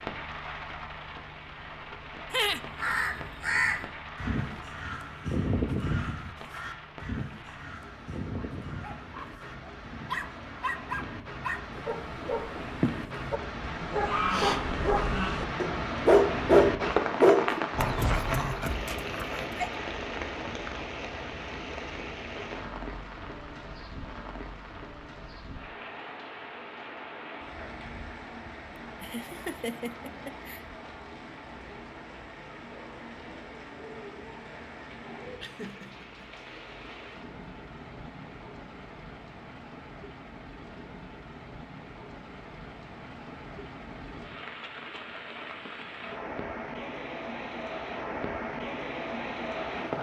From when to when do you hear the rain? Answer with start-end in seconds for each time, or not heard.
0.0-49.9.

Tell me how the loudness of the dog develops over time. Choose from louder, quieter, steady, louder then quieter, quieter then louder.
louder then quieter.